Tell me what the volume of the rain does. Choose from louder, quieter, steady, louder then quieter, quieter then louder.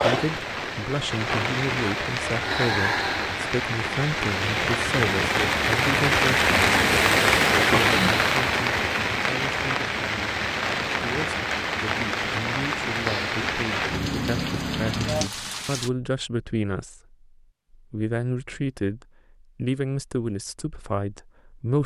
louder then quieter.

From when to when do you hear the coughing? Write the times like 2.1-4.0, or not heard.
not heard.